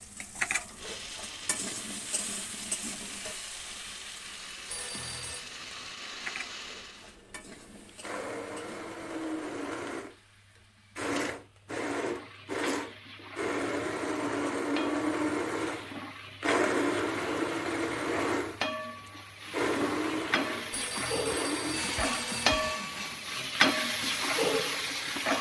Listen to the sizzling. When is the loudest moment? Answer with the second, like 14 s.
24 s.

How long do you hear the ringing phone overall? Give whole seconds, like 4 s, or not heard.
3 s.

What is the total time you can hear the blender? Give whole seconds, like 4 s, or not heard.
25 s.